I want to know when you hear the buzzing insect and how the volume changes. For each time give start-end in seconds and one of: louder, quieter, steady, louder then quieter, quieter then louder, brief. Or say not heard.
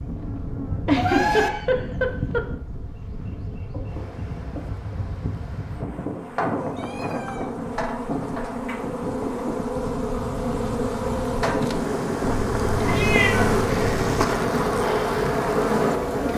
0.0-16.3 louder.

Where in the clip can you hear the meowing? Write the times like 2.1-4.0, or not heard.
0.9-1.5, 6.5-7.7, 12.3-14.2.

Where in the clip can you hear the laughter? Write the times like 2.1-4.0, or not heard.
0.8-2.5.